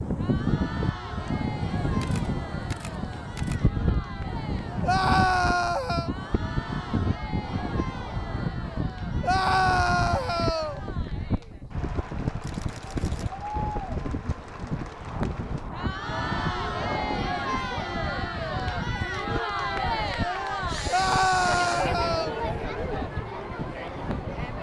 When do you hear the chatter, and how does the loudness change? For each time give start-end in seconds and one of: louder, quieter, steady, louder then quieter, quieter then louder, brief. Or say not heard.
0.0-24.5 louder.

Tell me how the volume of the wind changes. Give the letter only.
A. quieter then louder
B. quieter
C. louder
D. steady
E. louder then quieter
B.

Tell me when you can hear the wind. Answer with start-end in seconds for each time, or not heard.
0.0-24.5.